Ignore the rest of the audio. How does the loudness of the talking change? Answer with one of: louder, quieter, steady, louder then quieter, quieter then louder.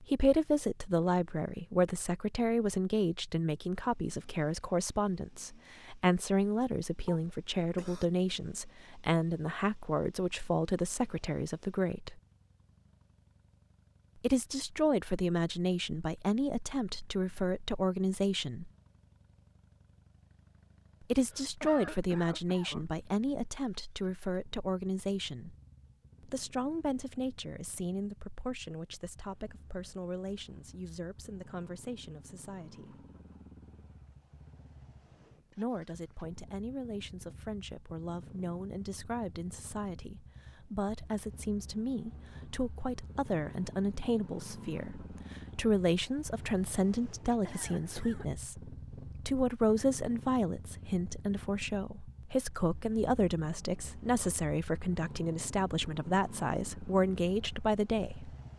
quieter then louder.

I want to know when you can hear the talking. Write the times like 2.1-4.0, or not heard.
0.0-12.2, 14.2-18.7, 21.1-25.6, 26.2-33.0, 35.5-58.4.